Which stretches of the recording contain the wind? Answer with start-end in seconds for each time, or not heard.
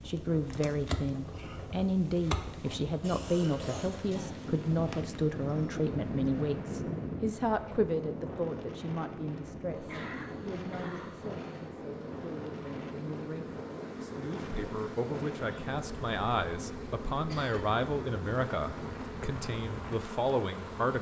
0.0-20.9.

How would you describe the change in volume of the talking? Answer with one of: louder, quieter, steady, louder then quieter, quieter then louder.
quieter then louder.